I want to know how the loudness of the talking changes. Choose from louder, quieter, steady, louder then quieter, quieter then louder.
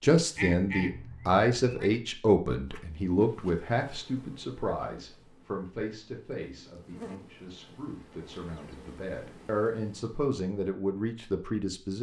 quieter then louder.